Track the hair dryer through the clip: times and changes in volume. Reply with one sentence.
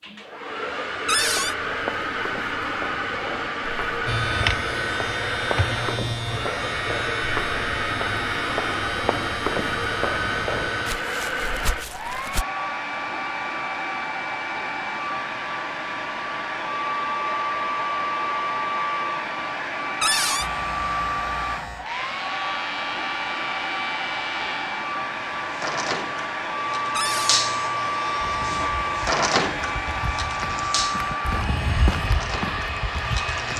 The hair dryer can be heard from 0.0 to 33.5 s, at a steady volume.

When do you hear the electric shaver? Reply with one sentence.
You can hear the electric shaver from 4.0 to 10.9 s and from 20.4 to 33.5 s.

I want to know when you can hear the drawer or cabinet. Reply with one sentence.
You can hear the drawer or cabinet from 1.1 to 1.6 s, from 20.0 to 20.5 s and from 26.9 to 27.4 s.